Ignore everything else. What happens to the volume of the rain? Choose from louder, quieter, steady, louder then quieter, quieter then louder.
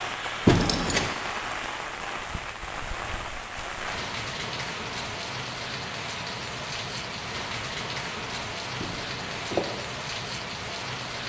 steady.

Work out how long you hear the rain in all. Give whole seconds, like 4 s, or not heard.
11 s.